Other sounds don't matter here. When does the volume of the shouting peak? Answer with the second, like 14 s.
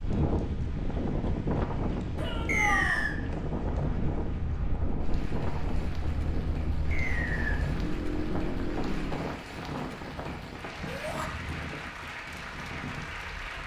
3 s.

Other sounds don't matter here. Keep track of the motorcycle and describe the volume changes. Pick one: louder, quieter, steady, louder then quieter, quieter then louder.
louder.